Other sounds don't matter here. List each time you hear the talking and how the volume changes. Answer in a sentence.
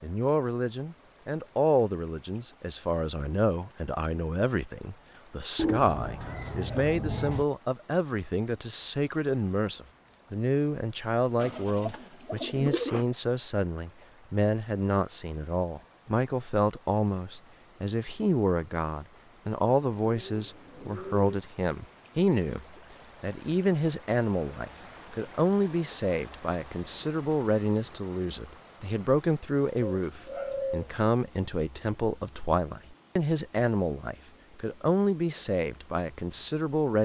You can hear the talking from 0.0 to 36.9 s, at a steady volume.